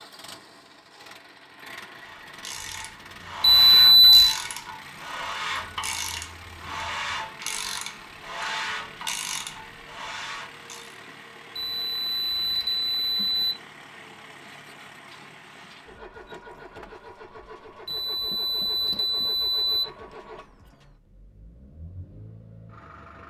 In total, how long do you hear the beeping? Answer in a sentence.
You can hear the beeping for 5 seconds altogether.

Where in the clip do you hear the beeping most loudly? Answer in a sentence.
The loudest moment of the beeping is at 4 seconds.